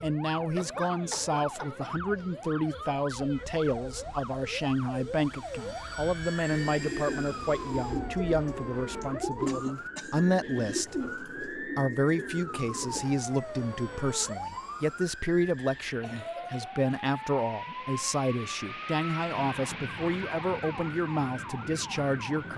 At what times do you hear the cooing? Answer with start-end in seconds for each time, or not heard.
6.5-13.1.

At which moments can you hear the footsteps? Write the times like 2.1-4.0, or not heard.
not heard.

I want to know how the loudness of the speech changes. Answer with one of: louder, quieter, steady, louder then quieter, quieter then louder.
steady.